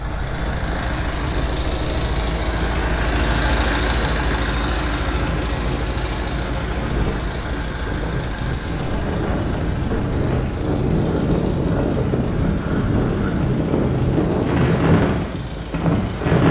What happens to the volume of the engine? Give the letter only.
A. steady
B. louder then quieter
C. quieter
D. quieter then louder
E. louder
C.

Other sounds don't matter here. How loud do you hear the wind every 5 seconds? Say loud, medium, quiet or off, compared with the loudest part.
quiet, medium, loud, loud.